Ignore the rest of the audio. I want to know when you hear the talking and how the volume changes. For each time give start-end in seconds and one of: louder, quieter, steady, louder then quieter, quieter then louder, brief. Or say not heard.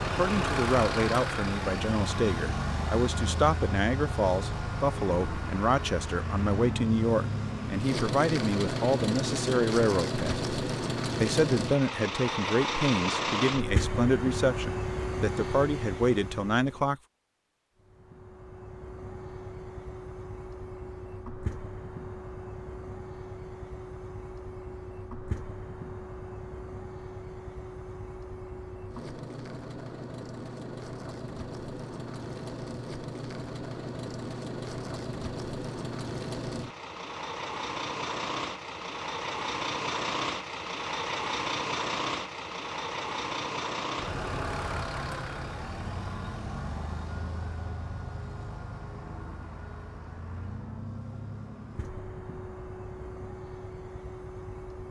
0.1-10.4 steady
11.2-16.9 quieter then louder.